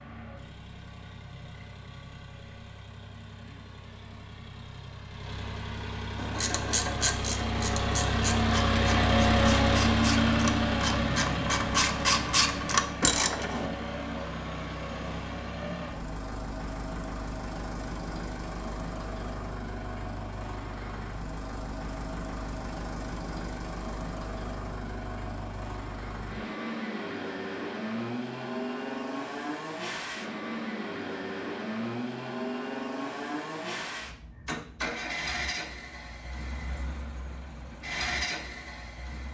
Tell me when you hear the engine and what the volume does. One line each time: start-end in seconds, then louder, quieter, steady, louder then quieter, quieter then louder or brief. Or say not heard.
0.0-39.3 louder then quieter.